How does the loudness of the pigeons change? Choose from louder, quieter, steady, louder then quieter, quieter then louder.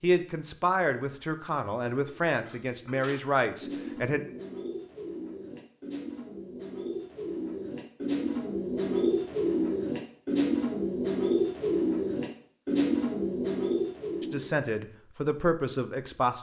louder.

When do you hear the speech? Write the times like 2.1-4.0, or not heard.
0.0-4.2, 14.2-16.3.